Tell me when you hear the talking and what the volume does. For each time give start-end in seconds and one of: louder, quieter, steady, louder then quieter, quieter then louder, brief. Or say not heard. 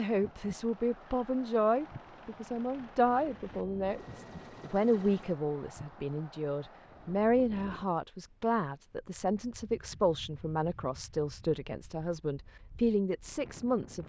0.0-14.0 steady.